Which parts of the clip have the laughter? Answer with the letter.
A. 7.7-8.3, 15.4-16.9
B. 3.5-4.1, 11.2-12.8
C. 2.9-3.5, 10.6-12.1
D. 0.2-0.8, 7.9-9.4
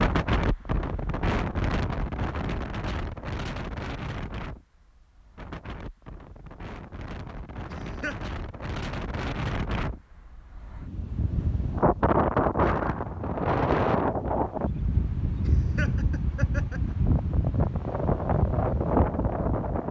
A.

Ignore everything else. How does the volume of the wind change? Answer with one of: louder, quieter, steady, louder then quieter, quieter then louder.
quieter then louder.